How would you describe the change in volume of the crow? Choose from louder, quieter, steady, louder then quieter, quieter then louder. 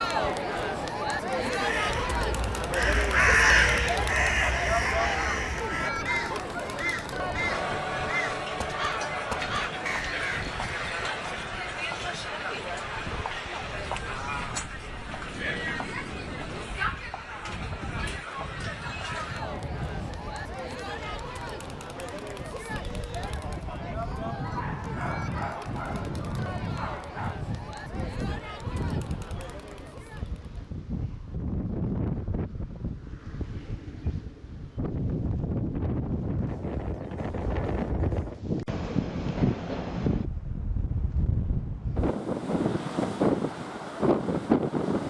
quieter.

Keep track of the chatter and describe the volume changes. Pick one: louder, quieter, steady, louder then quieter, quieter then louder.
quieter.